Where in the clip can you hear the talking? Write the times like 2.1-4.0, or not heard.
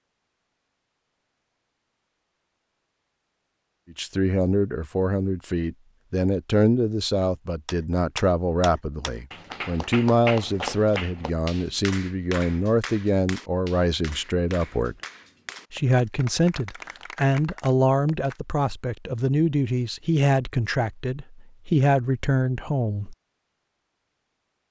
3.9-14.9, 15.7-23.1.